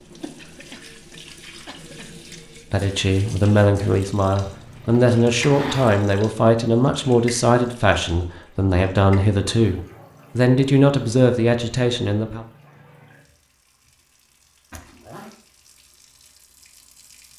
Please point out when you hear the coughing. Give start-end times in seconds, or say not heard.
0.3-2.3.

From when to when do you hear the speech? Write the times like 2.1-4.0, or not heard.
2.7-12.4.